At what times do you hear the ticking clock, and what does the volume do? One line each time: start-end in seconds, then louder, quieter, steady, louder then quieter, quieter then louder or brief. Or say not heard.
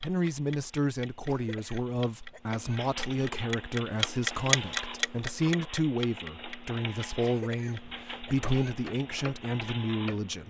0.0-10.4 louder then quieter.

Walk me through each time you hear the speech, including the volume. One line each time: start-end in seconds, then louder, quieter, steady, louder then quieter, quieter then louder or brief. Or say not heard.
0.0-10.4 steady.